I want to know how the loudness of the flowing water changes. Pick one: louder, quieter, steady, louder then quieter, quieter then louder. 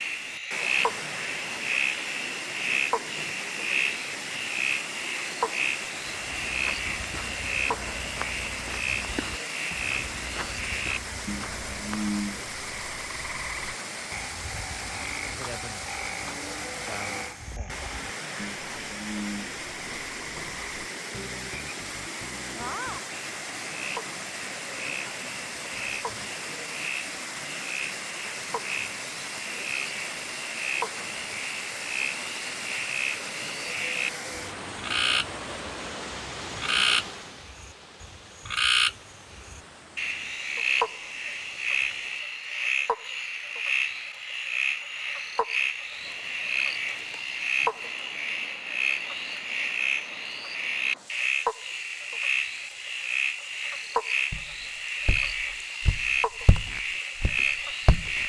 quieter.